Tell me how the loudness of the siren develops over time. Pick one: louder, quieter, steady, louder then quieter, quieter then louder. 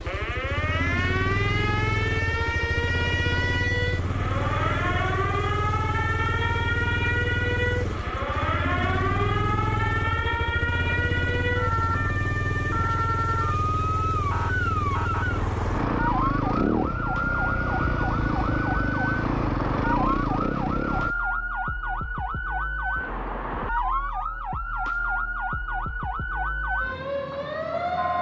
steady.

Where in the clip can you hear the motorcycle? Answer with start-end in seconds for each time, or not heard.
0.0-21.1.